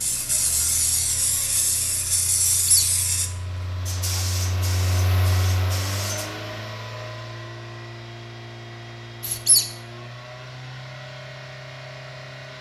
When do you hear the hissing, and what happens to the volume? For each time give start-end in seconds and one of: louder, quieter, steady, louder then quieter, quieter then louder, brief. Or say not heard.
0.0-6.3 quieter.